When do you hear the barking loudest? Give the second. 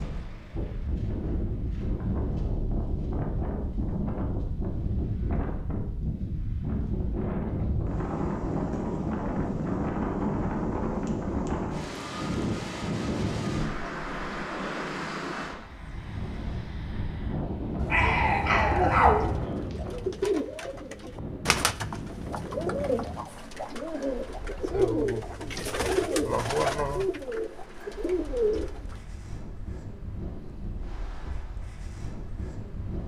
19 s.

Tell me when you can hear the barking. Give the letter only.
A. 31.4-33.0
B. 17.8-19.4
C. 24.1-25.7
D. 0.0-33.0
B.